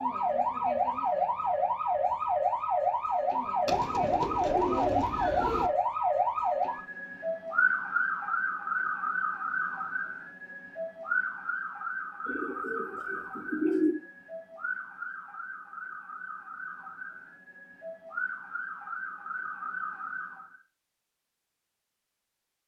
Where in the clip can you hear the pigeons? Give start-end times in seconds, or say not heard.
3.6-5.7, 12.2-13.9.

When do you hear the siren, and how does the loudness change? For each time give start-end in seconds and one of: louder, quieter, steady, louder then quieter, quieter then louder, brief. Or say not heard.
0.0-20.6 quieter.